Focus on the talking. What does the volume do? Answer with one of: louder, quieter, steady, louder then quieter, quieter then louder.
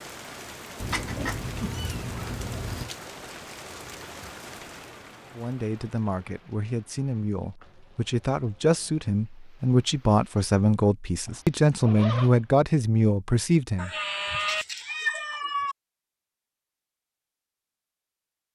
louder.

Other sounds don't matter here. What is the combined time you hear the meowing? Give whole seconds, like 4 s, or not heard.
4 s.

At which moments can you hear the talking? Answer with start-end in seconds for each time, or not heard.
5.3-13.9.